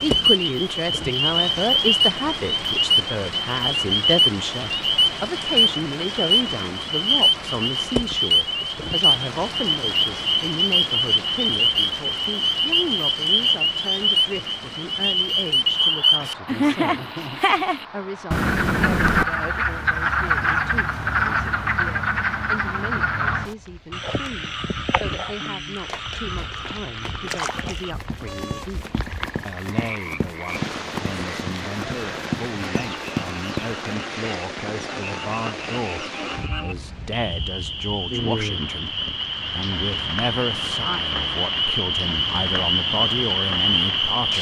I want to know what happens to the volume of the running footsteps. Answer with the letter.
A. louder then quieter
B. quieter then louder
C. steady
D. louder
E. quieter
D.